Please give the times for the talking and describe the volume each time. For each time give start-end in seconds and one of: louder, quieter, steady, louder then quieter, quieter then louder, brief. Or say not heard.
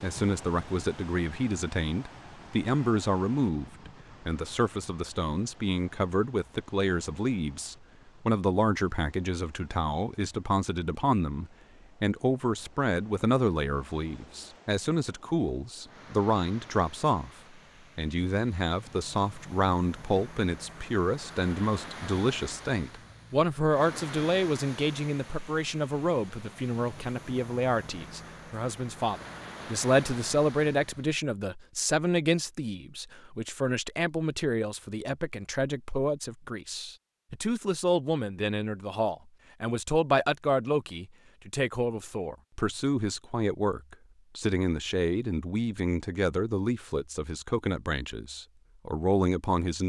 0.0-17.3 steady
17.9-49.8 steady.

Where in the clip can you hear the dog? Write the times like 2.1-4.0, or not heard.
not heard.